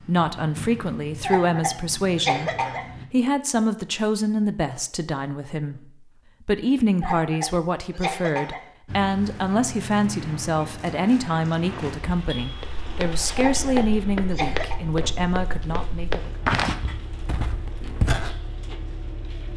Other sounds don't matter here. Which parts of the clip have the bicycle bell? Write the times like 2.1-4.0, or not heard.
not heard.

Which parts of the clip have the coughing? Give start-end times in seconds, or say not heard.
1.2-2.9, 7.0-8.6, 13.3-14.8.